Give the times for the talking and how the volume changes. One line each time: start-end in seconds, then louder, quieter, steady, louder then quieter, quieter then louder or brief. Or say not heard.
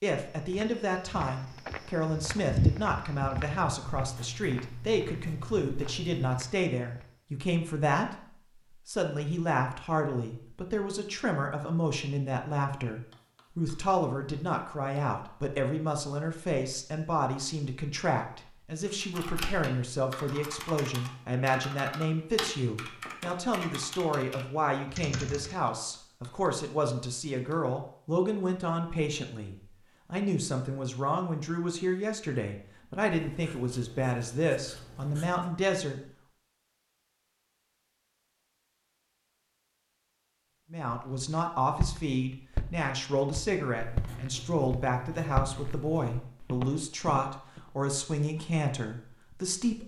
0.0-36.0 steady
40.7-49.8 steady.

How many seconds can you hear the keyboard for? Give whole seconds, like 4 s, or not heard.
7 s.